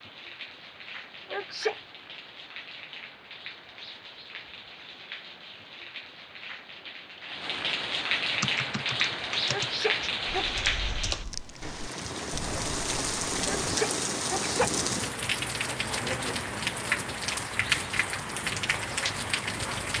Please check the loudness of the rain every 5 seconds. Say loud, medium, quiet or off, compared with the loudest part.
quiet, loud, loud, loud.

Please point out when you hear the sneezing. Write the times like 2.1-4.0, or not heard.
1.3-1.8, 9.5-10.6, 13.4-15.1.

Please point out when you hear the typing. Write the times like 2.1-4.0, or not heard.
8.3-13.8.